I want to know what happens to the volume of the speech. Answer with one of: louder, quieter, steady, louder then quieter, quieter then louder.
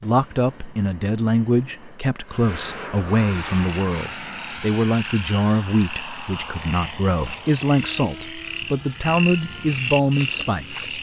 steady.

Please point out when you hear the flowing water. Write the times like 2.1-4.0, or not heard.
not heard.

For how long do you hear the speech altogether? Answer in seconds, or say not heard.
11 s.